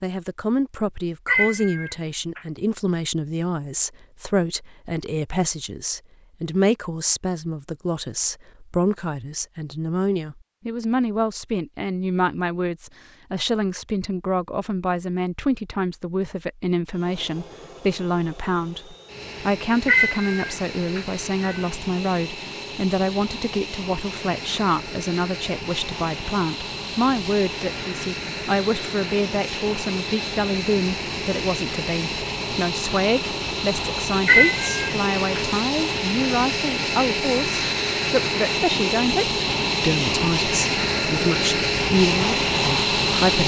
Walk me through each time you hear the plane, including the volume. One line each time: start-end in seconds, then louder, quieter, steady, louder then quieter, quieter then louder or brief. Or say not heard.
16.9-43.4 louder.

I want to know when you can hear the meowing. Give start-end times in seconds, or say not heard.
1.2-2.4, 19.9-21.6, 34.2-35.4.